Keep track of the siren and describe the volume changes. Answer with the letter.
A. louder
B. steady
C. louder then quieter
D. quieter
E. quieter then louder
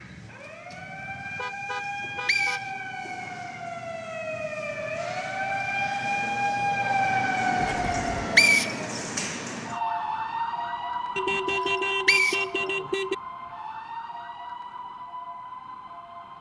C.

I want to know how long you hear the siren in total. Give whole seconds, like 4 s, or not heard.
16 s.